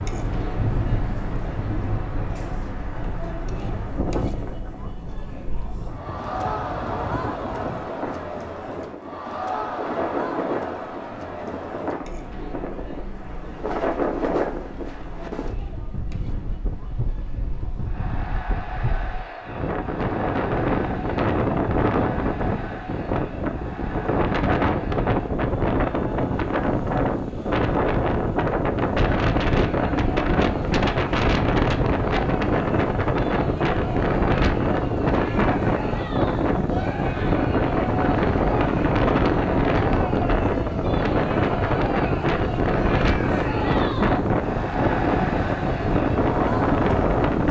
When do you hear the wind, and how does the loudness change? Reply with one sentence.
The wind can be heard from 0.0 to 47.4 s, getting louder.